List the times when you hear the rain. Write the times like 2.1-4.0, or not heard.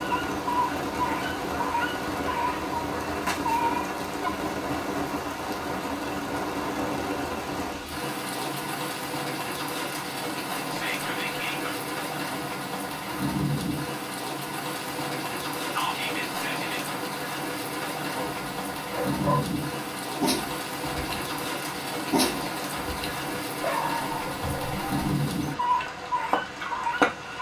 0.0-27.3.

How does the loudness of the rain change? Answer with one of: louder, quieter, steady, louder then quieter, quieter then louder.
steady.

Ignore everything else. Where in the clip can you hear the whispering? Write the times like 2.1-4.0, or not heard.
10.7-11.8, 15.7-16.9.